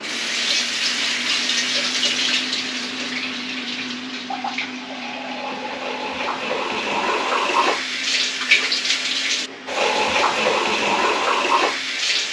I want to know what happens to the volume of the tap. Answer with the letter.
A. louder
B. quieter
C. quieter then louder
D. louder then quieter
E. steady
C.